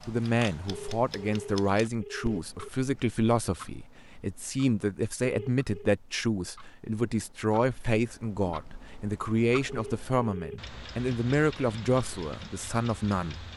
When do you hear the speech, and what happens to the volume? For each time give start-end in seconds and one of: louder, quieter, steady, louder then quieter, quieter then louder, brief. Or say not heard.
0.1-13.4 steady.